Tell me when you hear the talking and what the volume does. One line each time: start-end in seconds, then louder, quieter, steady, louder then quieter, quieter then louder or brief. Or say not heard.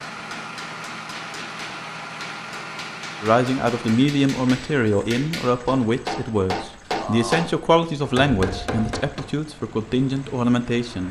3.2-11.0 steady.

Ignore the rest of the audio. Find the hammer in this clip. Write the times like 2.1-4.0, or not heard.
0.1-9.3.